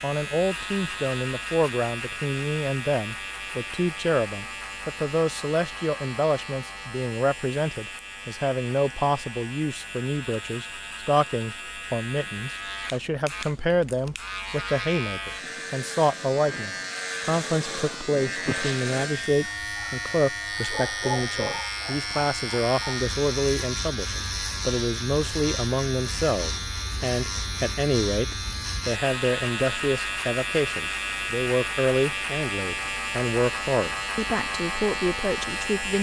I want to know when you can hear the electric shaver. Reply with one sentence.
The electric shaver can be heard from 0.0 to 35.9 s.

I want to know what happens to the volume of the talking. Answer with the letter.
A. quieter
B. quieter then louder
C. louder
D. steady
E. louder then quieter
D.